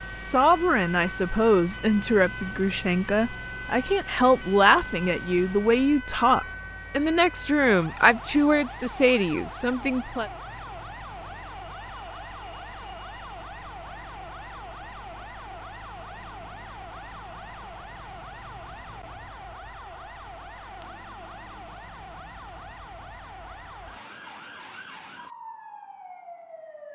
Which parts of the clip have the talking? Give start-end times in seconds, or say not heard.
0.0-10.3.